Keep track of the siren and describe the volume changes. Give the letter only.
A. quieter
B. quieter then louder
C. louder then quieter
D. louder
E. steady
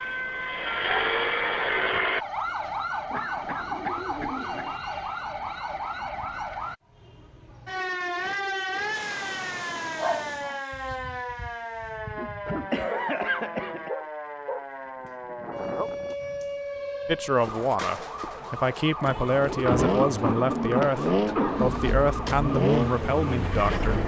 E.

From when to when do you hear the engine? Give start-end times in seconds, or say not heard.
0.0-2.2, 19.8-24.0.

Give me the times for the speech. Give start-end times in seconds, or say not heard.
17.1-24.0.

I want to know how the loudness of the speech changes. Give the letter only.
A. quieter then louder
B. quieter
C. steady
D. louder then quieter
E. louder
C.